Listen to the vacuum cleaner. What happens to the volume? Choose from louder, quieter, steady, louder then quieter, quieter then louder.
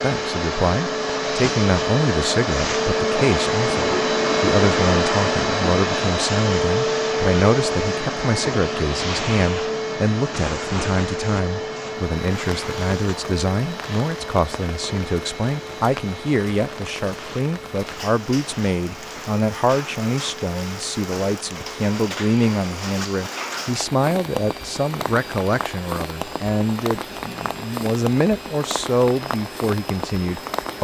quieter.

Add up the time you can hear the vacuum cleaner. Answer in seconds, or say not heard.
31 s.